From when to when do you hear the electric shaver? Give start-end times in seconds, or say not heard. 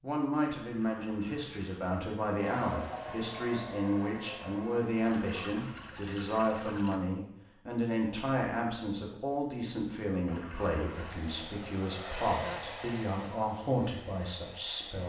not heard.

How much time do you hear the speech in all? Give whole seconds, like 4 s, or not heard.
15 s.